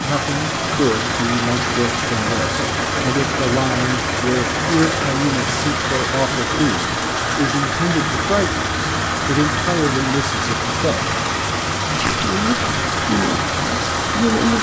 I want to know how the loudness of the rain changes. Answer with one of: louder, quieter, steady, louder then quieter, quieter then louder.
steady.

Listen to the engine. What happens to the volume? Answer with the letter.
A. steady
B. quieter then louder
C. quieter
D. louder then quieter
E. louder
A.